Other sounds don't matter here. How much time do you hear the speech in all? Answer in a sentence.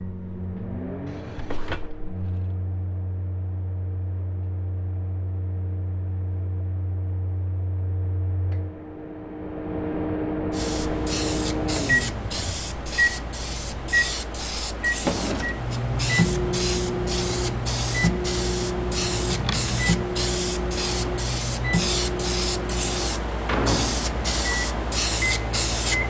You can't hear the speech here.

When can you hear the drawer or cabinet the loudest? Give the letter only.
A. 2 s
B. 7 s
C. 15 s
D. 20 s
C.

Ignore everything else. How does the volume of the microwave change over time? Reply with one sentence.
The loudness of the microwave goes up.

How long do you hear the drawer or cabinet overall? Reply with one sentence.
The drawer or cabinet can be heard for 3 seconds in total.